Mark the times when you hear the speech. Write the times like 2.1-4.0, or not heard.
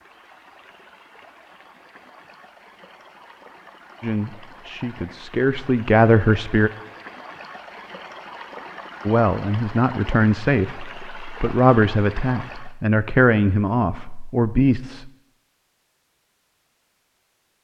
4.0-6.7, 9.1-15.1.